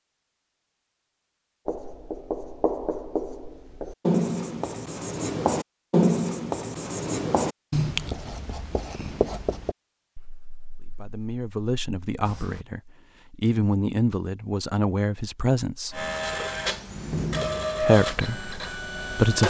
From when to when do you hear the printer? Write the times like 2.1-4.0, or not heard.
15.9-19.4.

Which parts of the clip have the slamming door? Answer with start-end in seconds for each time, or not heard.
16.9-17.9.